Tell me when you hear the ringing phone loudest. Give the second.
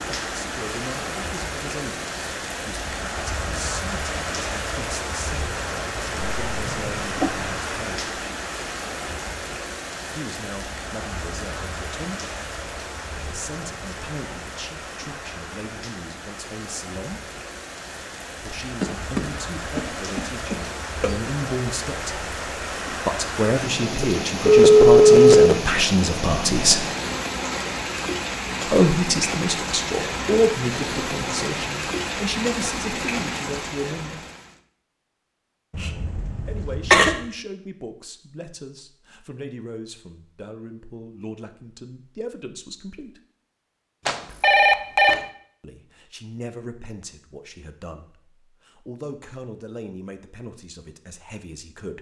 25 s.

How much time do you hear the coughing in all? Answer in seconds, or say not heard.
4 s.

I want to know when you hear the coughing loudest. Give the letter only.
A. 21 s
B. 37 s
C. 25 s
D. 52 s
B.